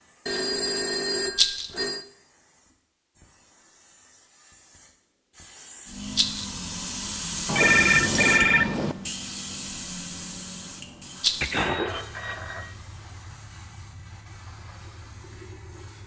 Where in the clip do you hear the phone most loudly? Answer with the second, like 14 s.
8 s.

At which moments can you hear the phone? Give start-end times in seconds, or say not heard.
0.2-2.0, 7.5-8.9, 11.4-12.7.